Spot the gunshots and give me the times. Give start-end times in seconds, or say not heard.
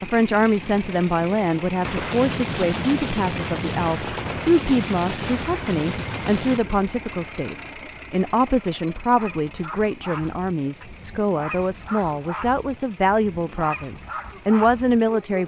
1.8-6.7.